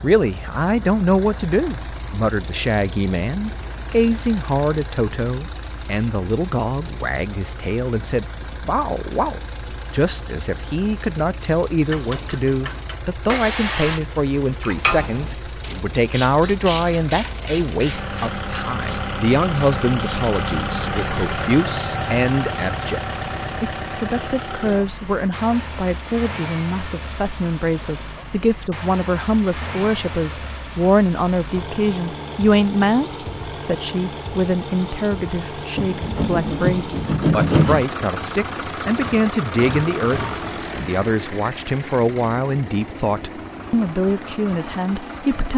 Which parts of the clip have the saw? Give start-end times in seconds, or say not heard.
11.9-14.0, 35.8-37.9.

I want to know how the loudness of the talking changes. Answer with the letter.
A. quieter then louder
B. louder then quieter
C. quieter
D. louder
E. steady
E.